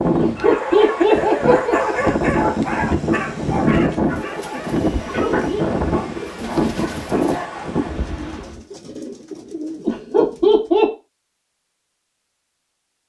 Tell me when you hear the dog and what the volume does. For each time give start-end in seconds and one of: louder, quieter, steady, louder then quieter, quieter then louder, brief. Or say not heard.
0.3-8.0 quieter.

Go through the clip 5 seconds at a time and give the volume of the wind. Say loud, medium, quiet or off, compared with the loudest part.
loud, loud, off.